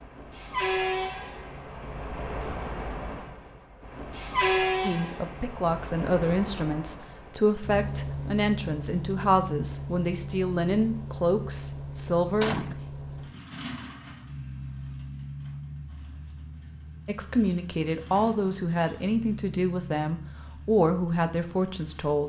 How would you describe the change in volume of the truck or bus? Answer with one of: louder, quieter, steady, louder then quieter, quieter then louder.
quieter.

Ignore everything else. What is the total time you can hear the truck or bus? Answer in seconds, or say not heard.
22 s.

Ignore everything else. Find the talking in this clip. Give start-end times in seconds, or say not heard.
4.8-12.6, 17.1-22.2.